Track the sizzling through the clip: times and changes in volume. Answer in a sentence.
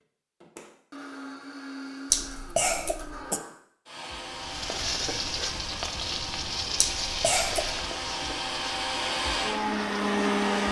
You can hear the sizzling from 4.3 to 10.6 s, getting quieter.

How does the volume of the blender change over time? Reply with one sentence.
The loudness of the blender goes up.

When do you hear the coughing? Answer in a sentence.
The coughing can be heard from 2.1 to 3.4 s and from 6.8 to 7.8 s.